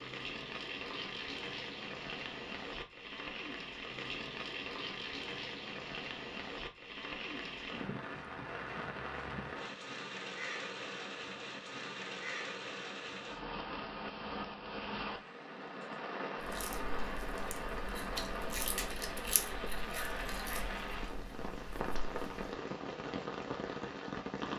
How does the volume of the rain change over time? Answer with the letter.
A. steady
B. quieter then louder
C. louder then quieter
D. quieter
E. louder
A.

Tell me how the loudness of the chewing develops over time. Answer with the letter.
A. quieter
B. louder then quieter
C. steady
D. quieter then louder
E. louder
B.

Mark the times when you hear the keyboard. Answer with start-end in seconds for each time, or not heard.
not heard.